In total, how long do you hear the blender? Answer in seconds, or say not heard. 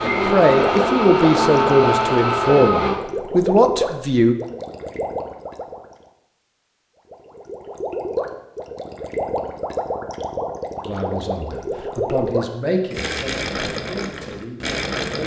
3 s.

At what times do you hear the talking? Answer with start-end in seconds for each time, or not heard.
0.0-4.3, 10.8-15.2.